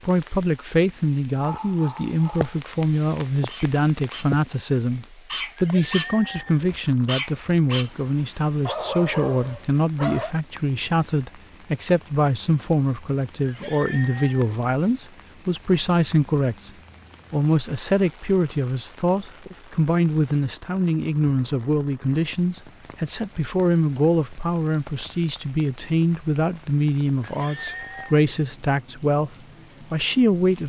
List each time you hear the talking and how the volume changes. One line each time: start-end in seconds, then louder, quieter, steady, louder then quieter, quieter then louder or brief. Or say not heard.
0.0-16.7 steady
17.3-30.6 steady.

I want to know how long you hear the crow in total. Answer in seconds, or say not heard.
not heard.